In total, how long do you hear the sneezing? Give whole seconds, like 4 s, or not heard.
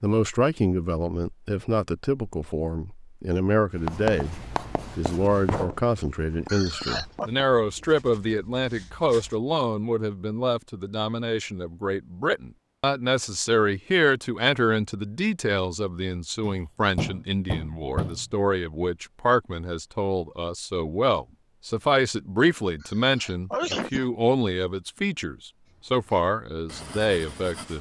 2 s.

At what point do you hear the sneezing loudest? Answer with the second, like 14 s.
24 s.